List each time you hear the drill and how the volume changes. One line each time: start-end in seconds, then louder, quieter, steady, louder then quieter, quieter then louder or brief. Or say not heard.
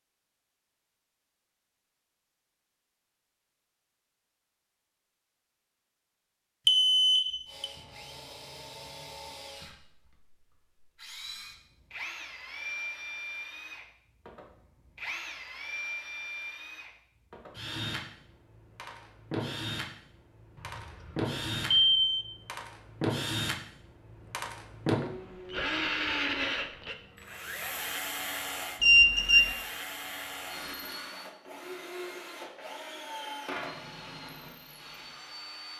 7.5-35.7 louder then quieter.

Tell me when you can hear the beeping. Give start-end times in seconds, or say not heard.
6.7-7.7, 20.6-22.2, 28.8-29.6.